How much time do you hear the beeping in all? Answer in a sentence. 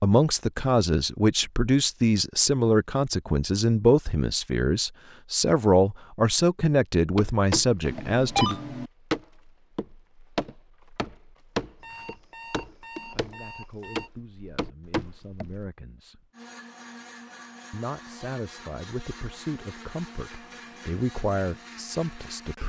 The beeping can be heard for 3 seconds in total.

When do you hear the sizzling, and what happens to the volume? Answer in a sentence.
You can't hear the sizzling here.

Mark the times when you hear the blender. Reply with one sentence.
The blender can be heard from 16.3 to 22.6 s.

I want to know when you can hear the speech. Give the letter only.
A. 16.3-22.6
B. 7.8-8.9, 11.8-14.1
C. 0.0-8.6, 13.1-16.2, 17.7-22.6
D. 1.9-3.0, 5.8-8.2
C.